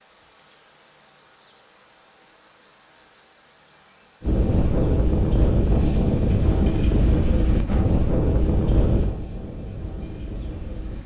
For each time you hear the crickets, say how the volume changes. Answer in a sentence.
The crickets can be heard from 0.0 to 11.0 s, getting quieter.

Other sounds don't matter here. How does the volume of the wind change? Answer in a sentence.
The volume of the wind goes down.